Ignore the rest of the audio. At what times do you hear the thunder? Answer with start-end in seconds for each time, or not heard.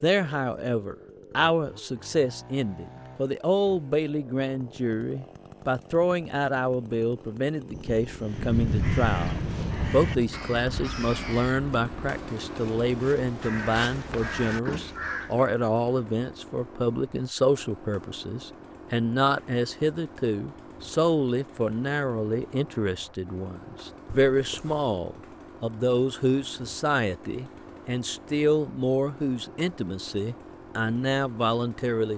7.7-10.4.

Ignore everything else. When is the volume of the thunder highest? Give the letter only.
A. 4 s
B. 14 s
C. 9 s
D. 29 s
C.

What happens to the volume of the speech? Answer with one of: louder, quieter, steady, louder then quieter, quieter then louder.
steady.